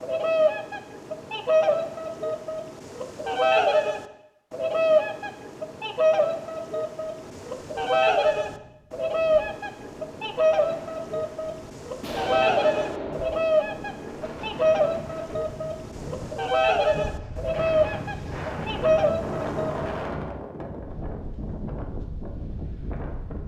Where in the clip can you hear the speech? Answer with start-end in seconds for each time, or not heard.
not heard.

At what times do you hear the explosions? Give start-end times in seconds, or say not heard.
12.0-13.6.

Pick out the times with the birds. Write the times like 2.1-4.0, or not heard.
0.0-20.0.